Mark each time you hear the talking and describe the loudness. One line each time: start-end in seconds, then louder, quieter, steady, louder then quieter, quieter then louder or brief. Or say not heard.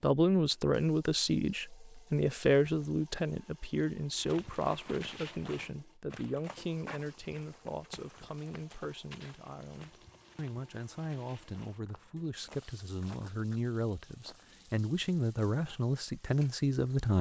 0.0-17.1 quieter then louder.